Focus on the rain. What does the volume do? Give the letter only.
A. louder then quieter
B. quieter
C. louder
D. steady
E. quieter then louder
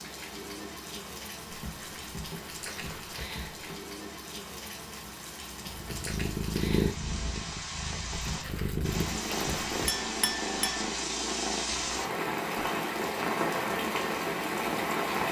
C.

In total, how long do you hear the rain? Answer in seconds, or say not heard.
15 s.